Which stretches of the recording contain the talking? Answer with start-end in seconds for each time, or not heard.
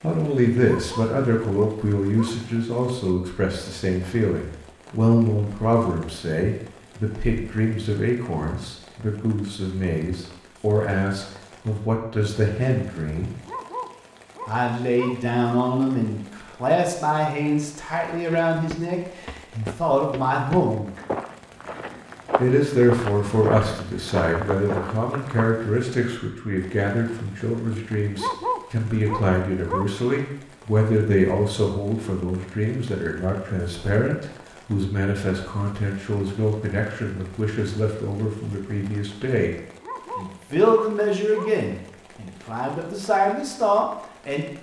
0.0-13.3, 14.4-20.9, 22.4-39.5, 40.1-44.5.